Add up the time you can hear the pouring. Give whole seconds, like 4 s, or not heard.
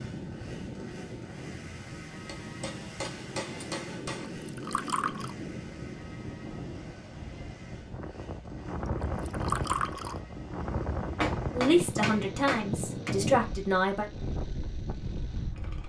2 s.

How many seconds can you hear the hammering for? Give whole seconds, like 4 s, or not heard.
4 s.